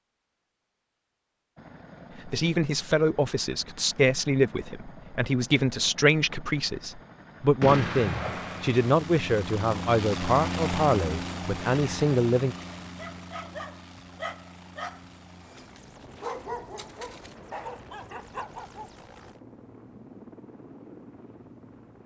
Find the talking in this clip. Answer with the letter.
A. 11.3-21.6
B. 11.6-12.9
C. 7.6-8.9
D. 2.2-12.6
D.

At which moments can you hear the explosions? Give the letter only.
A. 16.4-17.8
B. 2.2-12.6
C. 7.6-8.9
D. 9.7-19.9
C.